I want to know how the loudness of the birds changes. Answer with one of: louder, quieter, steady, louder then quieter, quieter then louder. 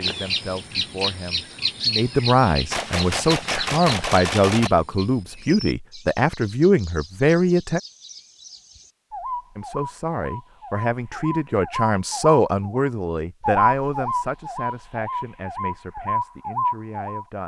quieter then louder.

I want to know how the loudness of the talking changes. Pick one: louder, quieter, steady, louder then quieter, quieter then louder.
quieter.